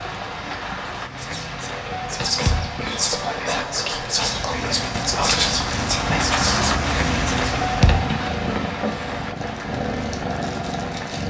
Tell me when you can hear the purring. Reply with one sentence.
You can hear the purring from 4.2 to 11.2 s.